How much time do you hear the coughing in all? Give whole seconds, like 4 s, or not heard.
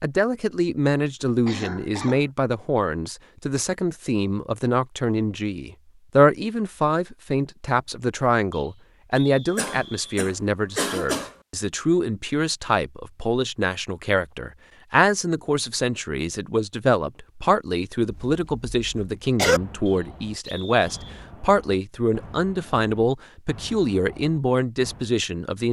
4 s.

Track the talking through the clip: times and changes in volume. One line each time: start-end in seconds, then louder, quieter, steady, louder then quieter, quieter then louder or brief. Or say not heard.
0.0-25.6 steady.